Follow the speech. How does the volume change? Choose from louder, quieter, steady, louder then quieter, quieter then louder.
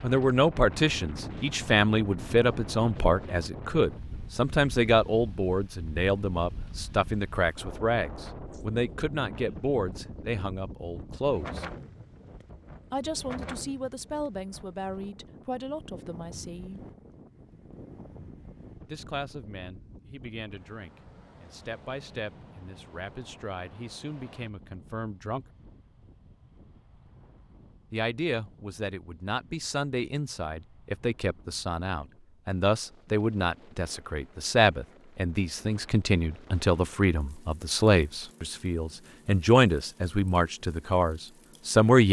quieter then louder.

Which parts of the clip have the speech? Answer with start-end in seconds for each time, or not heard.
0.0-11.7, 12.9-16.9, 18.9-25.4, 27.9-42.0.